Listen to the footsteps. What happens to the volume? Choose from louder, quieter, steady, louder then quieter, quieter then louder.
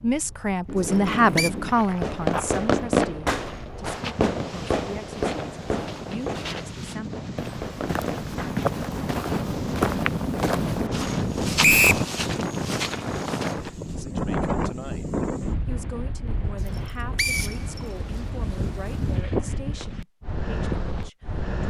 louder.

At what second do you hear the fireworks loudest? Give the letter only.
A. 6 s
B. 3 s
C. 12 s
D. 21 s
B.